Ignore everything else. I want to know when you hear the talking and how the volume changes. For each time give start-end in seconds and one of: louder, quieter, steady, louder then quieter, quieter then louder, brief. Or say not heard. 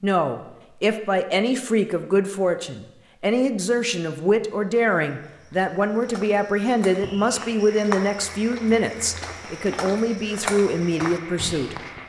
0.0-11.8 steady.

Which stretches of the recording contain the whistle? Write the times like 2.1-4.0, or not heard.
not heard.